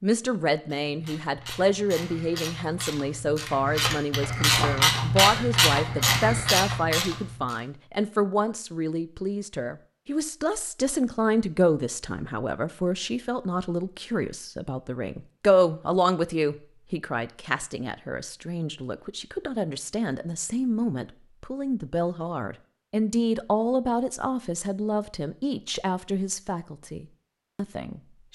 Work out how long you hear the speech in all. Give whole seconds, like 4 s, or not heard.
28 s.